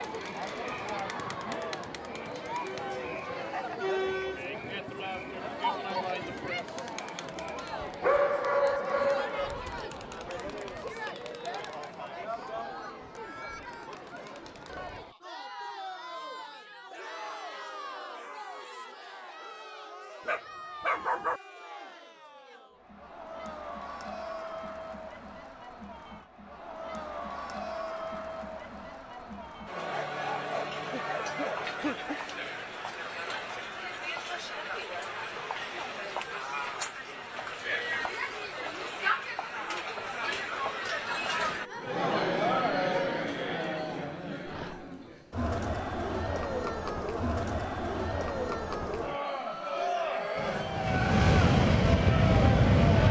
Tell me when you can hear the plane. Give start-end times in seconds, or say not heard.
50.4-53.0.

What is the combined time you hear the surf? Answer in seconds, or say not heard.
not heard.